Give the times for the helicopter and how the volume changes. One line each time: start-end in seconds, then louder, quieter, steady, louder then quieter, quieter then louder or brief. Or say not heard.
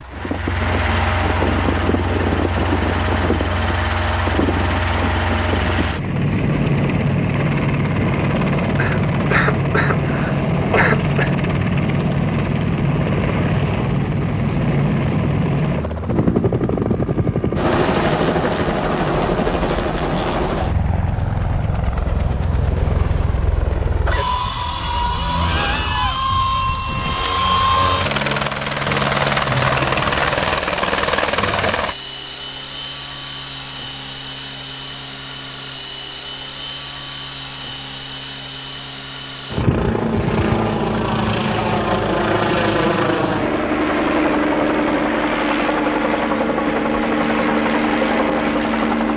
0.0-49.1 steady.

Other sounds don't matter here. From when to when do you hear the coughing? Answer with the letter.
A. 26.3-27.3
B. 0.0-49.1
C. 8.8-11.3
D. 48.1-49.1
C.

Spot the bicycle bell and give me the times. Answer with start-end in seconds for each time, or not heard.
26.3-27.3.